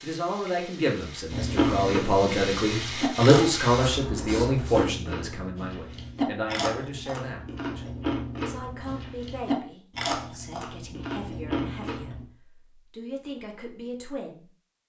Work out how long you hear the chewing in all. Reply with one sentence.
You can hear the chewing for 11 seconds altogether.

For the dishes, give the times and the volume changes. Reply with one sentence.
You can't hear the dishes here.